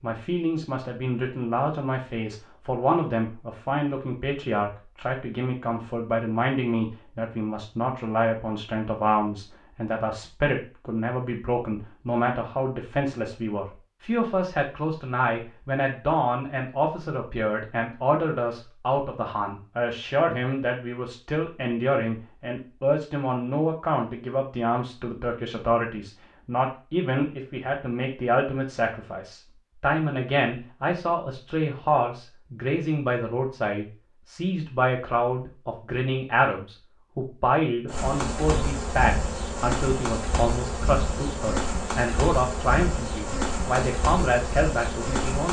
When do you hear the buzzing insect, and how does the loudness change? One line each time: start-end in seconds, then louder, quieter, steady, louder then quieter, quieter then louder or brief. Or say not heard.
37.9-45.4 steady.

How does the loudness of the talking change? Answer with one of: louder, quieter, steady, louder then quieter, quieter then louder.
steady.